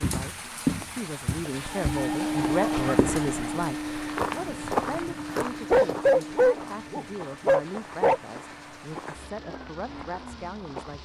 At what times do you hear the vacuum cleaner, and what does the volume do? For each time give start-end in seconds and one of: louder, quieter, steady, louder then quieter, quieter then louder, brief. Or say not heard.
1.4-10.8 quieter.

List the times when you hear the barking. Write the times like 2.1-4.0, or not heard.
1.6-3.6, 5.7-8.2.